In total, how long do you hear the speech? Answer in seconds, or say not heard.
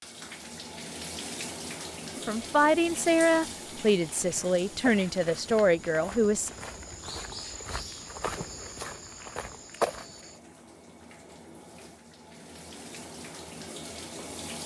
4 s.